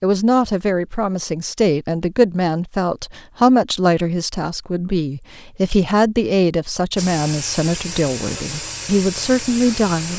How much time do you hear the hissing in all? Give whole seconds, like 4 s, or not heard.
3 s.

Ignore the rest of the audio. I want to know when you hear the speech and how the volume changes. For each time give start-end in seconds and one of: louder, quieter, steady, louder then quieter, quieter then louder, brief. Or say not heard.
0.0-10.1 steady.